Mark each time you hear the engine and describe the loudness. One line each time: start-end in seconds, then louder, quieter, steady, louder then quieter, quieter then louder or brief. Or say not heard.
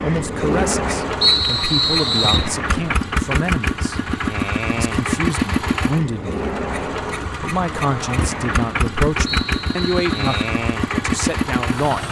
0.0-12.0 steady.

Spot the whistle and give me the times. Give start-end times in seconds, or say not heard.
1.2-2.5, 9.2-10.5.